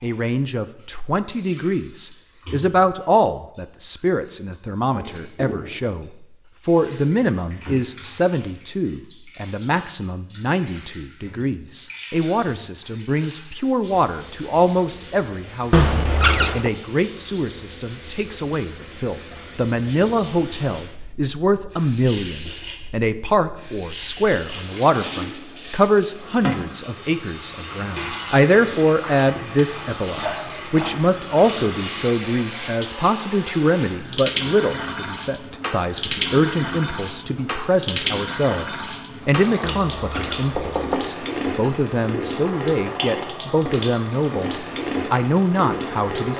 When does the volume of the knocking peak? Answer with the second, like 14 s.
16 s.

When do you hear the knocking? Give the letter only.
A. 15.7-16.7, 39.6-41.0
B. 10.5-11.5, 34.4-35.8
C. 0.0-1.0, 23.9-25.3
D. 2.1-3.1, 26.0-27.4
A.